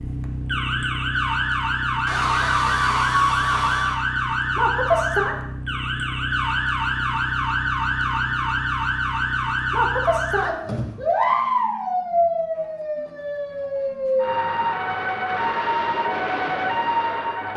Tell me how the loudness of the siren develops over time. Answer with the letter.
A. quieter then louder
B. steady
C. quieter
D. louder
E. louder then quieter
B.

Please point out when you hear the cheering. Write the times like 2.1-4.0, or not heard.
2.0-4.0.